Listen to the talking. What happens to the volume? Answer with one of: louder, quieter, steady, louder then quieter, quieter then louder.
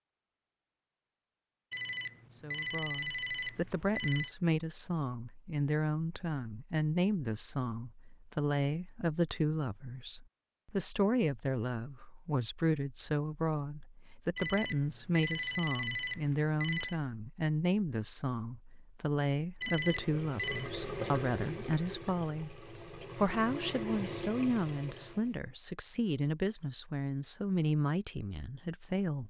steady.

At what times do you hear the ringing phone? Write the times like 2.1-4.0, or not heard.
1.7-4.3, 14.3-17.0, 19.6-20.7.